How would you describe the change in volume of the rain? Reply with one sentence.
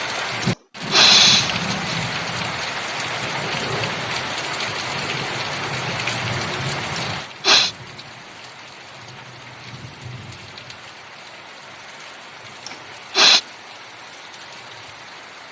The volume of the rain goes down.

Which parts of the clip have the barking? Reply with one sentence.
You can't hear the barking here.